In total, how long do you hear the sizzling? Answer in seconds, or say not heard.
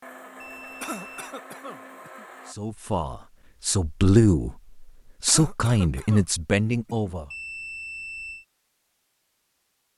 not heard.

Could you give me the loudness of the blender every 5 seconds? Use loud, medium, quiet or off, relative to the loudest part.
loud, off.